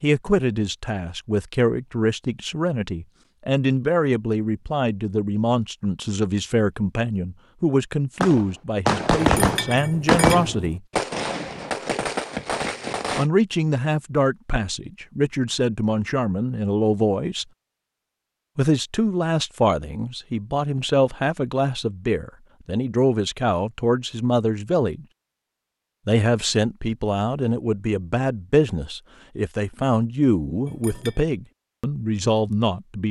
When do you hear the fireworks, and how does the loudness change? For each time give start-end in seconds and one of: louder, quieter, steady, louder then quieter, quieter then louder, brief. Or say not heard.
8.2-13.2 quieter.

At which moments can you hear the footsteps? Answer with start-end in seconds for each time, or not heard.
not heard.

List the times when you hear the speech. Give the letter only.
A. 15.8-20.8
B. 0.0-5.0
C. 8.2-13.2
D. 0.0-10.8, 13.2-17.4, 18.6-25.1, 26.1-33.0
D.